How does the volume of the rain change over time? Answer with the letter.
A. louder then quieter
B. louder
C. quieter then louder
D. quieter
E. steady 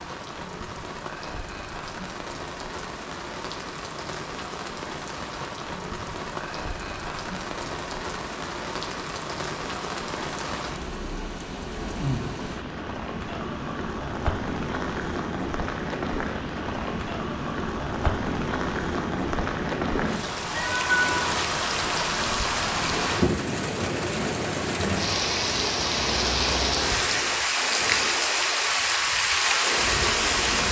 B.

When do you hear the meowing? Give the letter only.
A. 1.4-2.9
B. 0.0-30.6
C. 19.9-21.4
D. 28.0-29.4
C.